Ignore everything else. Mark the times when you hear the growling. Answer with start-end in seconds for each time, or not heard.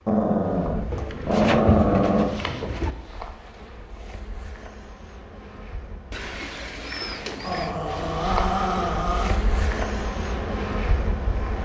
0.1-2.3, 7.4-9.4.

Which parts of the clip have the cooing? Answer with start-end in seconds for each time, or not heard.
0.9-3.0, 6.1-7.8.